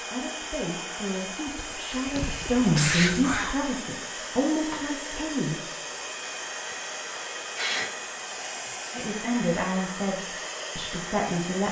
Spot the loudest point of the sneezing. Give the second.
3 s.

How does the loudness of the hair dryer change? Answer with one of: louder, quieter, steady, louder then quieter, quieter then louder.
steady.